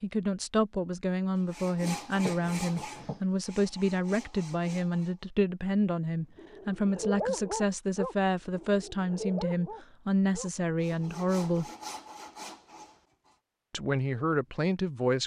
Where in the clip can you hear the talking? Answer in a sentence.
You can hear the talking from 0.0 to 11.7 s and from 13.7 to 15.2 s.